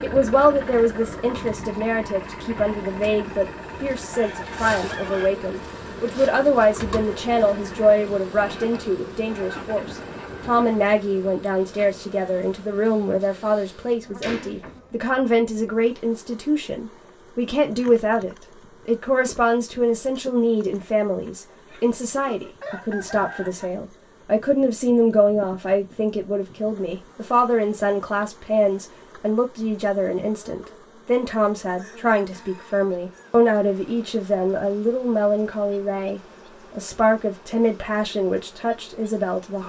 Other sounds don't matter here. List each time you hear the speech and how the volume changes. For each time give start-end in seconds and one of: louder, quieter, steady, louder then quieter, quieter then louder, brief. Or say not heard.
0.0-39.6 steady.